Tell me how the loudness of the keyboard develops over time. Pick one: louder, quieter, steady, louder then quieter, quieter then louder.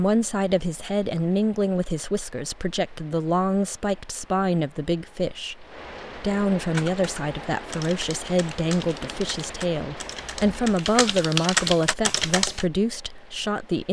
louder.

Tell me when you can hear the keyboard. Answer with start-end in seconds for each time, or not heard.
6.7-12.7.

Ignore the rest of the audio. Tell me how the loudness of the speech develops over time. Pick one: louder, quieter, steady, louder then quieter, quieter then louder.
steady.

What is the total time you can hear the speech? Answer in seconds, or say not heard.
14 s.